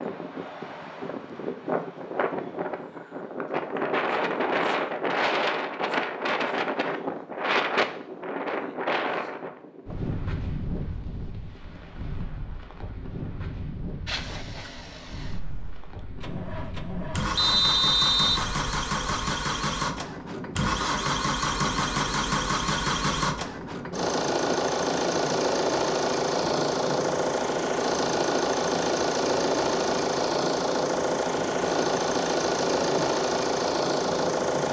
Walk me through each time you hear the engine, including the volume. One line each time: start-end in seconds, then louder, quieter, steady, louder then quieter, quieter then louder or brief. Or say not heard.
14.1-34.6 louder.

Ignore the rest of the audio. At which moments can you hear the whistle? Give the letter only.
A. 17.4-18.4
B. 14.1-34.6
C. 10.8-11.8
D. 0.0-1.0
A.